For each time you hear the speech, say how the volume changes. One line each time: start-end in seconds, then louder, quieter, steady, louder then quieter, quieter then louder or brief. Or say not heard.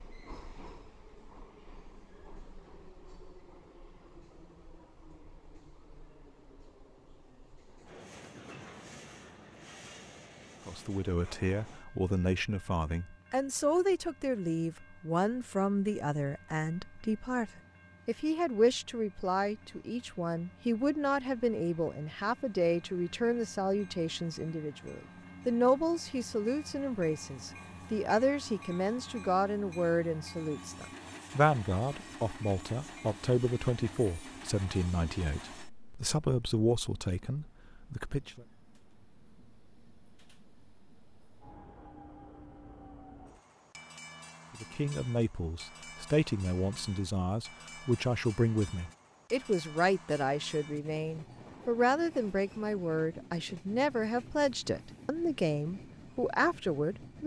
10.7-38.5 steady
44.5-57.2 steady.